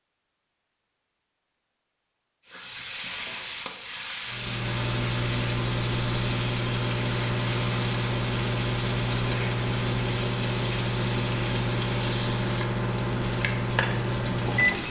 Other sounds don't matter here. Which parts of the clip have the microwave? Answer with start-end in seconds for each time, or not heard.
4.2-14.8.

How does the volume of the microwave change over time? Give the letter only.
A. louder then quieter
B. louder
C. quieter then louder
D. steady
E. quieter
D.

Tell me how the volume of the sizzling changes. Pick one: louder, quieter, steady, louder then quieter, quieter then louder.
steady.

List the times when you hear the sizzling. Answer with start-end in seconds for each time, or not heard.
2.5-14.8.